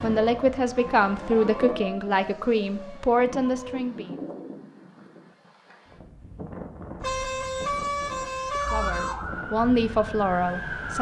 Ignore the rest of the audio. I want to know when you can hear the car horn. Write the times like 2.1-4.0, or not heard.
0.7-1.9, 7.0-9.2.